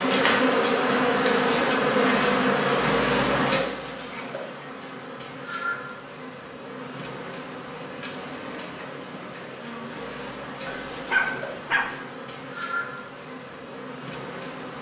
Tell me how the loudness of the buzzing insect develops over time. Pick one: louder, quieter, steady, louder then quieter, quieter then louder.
quieter.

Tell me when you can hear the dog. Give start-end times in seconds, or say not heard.
10.7-12.0.